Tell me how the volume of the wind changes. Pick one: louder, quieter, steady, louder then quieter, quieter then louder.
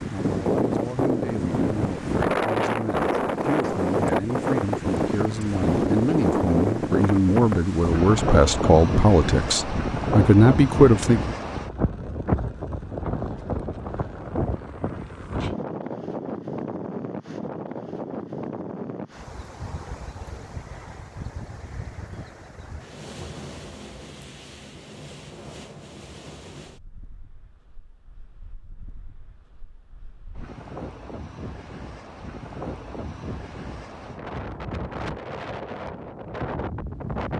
quieter then louder.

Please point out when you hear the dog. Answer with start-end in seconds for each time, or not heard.
not heard.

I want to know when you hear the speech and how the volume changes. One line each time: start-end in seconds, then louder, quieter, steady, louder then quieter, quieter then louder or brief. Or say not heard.
0.0-11.3 louder.